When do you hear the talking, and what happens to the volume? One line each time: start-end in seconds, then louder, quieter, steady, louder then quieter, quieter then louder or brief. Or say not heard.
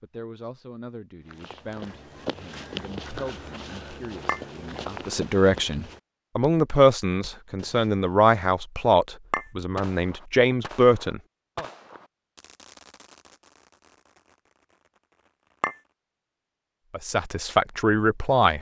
0.0-11.7 louder
16.9-18.5 brief.